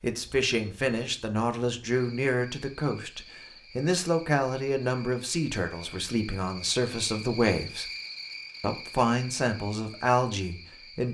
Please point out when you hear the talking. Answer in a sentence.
The talking can be heard from 0.0 to 7.8 s and from 8.6 to 11.0 s.